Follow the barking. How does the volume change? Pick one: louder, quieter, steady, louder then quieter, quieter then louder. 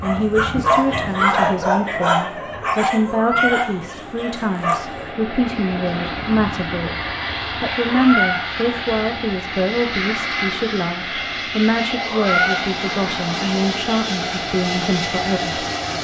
quieter.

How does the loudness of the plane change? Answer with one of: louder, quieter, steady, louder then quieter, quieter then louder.
louder.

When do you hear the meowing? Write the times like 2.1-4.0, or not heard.
3.0-3.6, 7.8-8.4, 12.1-12.7.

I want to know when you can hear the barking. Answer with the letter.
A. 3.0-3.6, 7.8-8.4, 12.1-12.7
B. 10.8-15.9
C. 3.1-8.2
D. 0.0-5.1
D.